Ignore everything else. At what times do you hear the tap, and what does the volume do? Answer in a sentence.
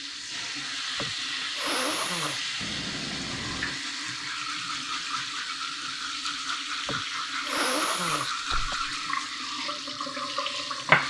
You can hear the tap from 0.0 to 11.0 s, at a steady volume.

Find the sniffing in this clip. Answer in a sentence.
The sniffing can be heard from 0.9 to 2.4 s and from 6.8 to 8.8 s.